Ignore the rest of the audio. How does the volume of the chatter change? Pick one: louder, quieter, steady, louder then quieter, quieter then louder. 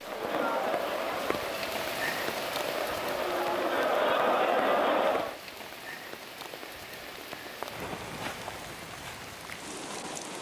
quieter then louder.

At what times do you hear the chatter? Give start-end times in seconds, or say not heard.
0.0-5.4.